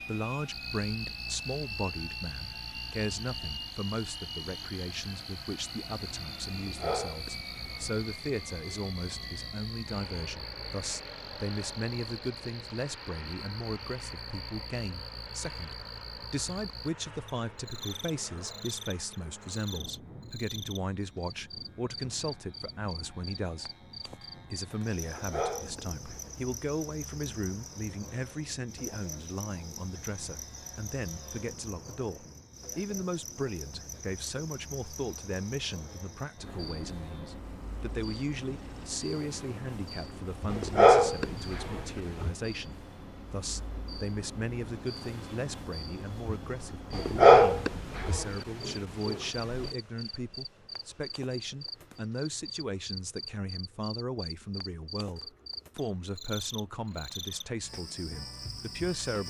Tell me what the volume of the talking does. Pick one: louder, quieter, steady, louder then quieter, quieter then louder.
steady.